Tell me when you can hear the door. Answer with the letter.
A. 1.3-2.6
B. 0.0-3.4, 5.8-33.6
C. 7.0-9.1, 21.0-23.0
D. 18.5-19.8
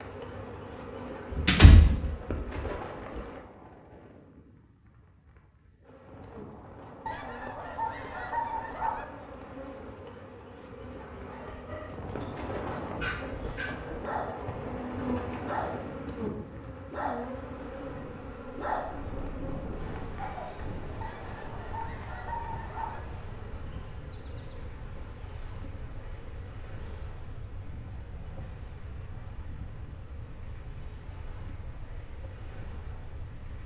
A.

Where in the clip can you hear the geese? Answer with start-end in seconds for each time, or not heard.
7.0-9.1, 21.0-23.0.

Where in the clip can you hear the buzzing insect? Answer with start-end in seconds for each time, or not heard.
0.0-3.4, 5.8-33.6.